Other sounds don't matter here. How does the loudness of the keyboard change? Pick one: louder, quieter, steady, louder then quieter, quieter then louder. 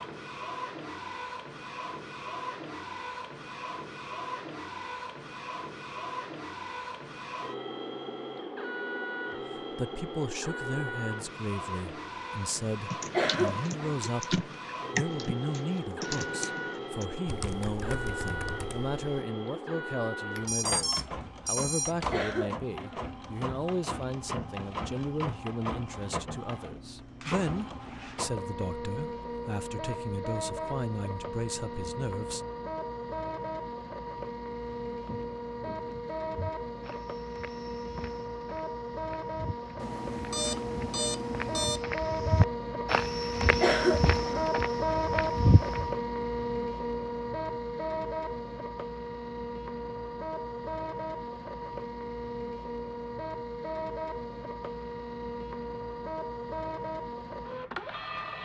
louder then quieter.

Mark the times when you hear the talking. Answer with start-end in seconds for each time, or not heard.
9.6-32.5.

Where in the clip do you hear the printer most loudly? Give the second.
45 s.